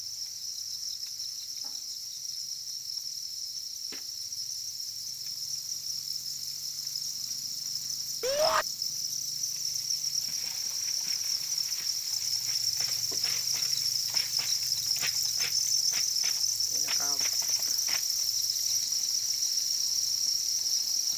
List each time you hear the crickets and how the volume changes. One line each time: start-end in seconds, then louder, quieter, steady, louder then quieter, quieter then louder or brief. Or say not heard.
0.0-21.1 louder.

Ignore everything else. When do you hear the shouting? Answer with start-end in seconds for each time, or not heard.
8.2-8.7.